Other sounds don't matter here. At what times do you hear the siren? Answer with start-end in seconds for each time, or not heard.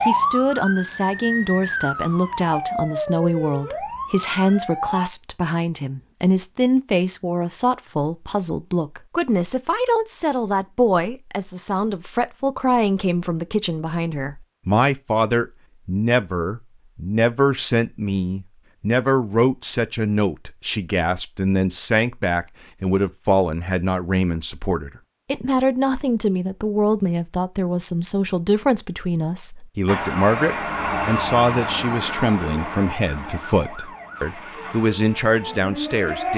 0.0-5.1, 29.9-36.3.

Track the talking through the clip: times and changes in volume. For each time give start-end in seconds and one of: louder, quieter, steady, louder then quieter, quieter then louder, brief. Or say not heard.
0.1-36.3 steady.